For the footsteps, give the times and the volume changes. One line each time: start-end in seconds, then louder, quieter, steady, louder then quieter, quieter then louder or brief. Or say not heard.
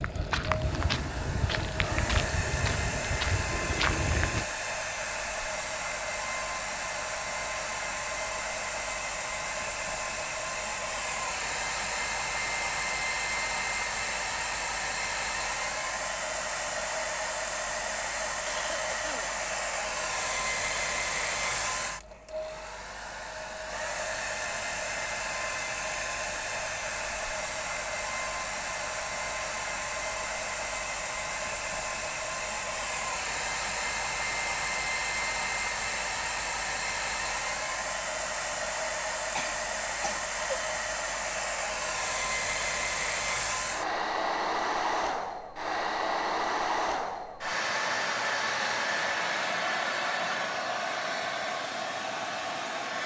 0.0-4.5 steady.